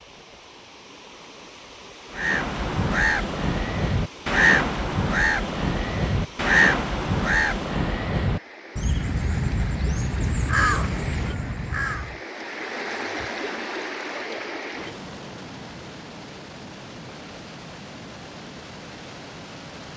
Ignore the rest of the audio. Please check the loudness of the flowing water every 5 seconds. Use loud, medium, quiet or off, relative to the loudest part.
medium, medium, loud, medium.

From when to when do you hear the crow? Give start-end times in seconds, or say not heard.
2.1-12.2.